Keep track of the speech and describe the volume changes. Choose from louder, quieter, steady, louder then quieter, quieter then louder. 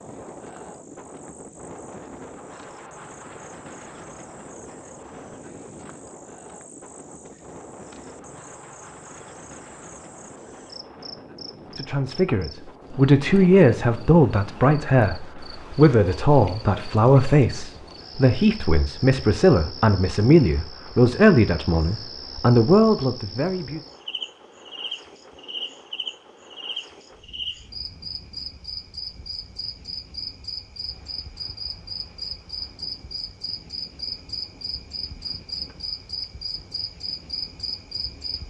steady.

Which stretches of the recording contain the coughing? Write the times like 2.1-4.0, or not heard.
not heard.